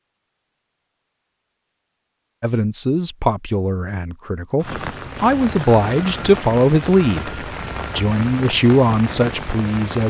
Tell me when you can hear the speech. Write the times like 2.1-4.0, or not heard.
2.4-10.0.